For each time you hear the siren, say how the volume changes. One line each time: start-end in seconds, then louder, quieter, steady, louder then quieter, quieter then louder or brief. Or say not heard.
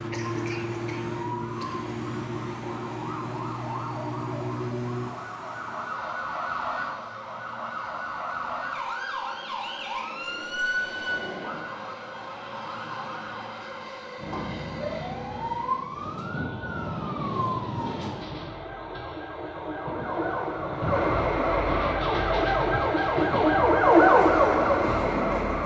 0.0-25.6 louder.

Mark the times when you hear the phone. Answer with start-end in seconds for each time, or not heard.
not heard.